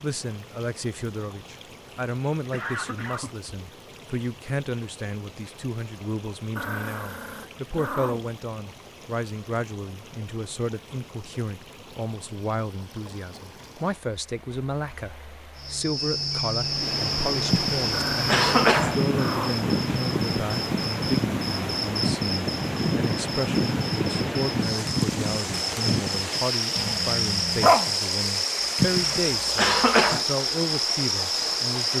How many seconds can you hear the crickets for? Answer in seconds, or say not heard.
16 s.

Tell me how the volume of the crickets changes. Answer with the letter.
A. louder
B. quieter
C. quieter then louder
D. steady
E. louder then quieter
D.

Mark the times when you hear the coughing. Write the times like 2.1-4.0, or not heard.
2.5-3.5, 17.5-18.9, 28.8-30.2.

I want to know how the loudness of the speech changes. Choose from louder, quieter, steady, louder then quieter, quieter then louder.
steady.